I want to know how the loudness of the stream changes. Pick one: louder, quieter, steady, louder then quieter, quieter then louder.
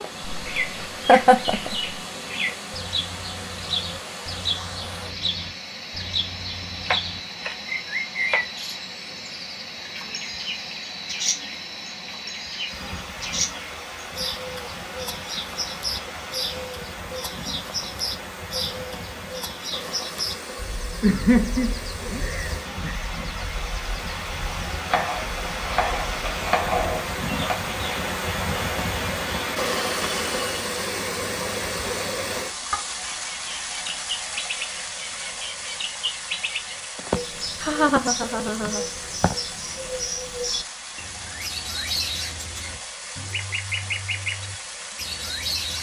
louder then quieter.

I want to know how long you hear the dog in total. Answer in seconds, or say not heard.
not heard.